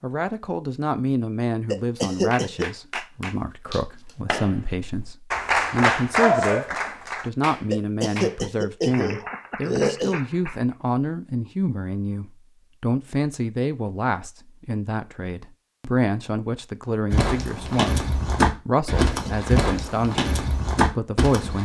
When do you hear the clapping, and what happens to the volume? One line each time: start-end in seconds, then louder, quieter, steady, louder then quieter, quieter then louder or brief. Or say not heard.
2.3-10.8 louder then quieter.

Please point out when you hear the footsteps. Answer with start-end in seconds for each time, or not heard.
17.1-21.5.